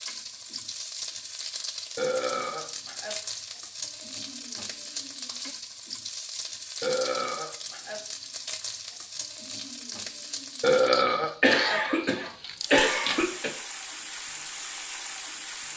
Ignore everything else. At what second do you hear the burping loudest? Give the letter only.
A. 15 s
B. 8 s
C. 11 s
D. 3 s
C.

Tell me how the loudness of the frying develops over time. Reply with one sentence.
The loudness of the frying stays about the same.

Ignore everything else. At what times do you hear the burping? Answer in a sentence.
The burping can be heard from 1.9 to 3.1 s, from 6.8 to 8.0 s and from 10.6 to 11.8 s.